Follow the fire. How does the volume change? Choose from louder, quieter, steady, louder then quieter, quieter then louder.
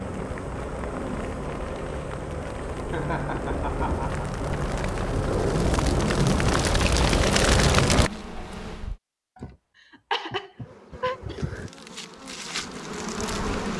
louder.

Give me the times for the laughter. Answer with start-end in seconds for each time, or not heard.
2.9-4.2, 9.3-11.2.